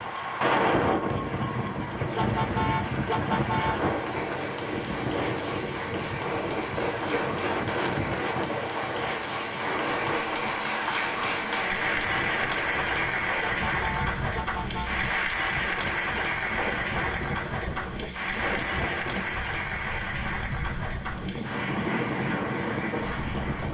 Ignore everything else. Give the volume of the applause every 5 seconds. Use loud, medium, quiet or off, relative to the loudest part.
medium, medium, loud, loud, medium.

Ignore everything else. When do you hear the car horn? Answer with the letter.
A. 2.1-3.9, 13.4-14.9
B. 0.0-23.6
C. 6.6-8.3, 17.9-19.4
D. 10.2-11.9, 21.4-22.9
A.